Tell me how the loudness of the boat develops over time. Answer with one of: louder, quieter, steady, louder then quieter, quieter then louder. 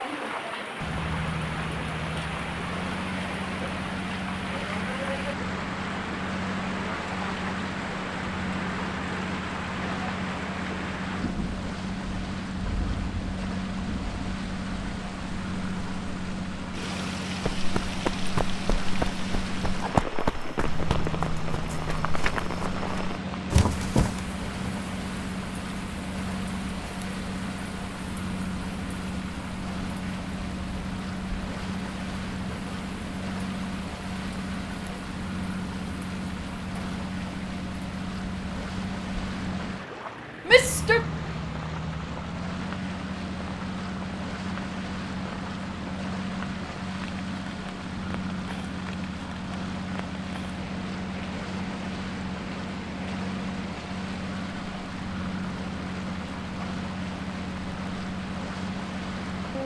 steady.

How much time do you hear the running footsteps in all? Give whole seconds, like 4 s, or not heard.
7 s.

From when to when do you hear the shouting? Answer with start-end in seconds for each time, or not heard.
40.5-41.0.